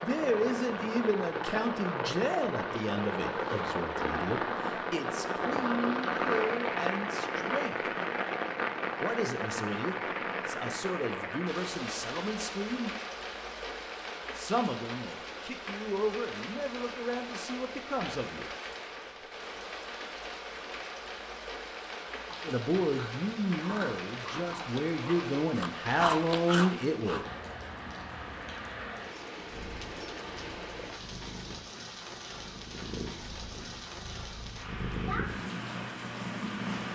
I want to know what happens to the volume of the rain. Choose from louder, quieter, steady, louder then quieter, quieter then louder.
quieter.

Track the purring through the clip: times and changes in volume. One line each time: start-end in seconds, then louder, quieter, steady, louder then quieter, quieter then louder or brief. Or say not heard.
29.4-36.8 louder.